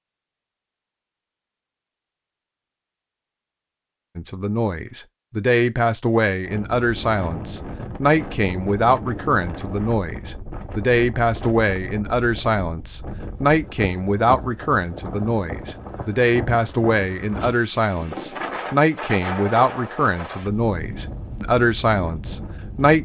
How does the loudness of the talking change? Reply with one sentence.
The volume of the talking stays about the same.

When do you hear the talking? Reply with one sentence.
The talking can be heard from 4.2 to 23.0 s.